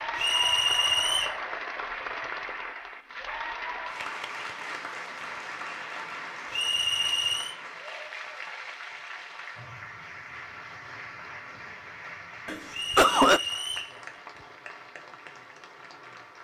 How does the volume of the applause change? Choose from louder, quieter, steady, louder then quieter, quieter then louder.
quieter.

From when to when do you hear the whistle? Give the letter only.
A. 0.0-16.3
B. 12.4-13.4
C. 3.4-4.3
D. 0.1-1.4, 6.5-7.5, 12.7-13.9
D.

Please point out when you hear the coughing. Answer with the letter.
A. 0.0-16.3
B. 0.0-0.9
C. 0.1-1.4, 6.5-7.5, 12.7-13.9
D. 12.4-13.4
D.